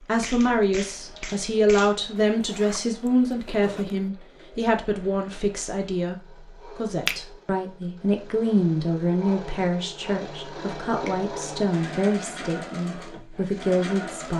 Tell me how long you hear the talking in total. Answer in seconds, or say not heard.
14 s.